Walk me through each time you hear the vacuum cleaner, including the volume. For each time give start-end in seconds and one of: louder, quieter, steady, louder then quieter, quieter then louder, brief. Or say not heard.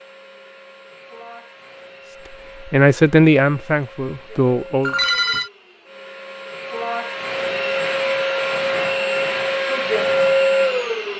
0.0-11.1 louder.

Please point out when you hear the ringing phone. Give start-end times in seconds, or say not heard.
4.8-5.5.